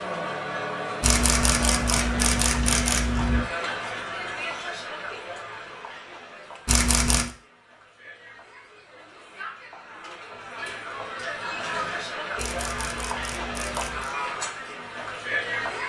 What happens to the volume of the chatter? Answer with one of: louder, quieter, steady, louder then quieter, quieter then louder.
quieter then louder.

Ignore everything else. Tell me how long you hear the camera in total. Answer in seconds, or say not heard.
5 s.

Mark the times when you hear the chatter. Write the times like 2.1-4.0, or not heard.
0.0-15.8.